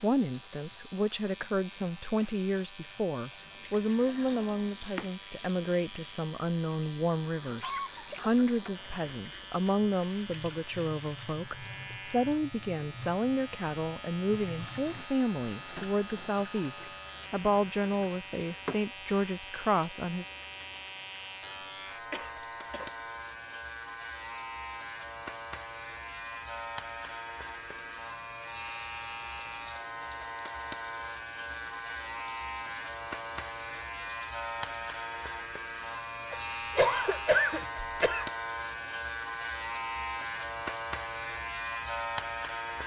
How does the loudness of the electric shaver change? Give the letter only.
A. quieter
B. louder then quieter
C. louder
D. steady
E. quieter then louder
C.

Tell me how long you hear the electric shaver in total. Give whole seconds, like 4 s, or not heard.
43 s.